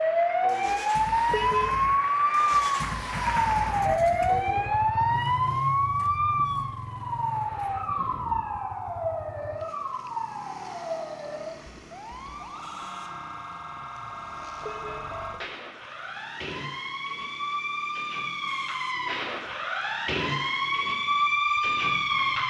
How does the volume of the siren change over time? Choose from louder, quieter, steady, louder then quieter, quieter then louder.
quieter then louder.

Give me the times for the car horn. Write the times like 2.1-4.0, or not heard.
1.2-1.9, 14.6-15.1.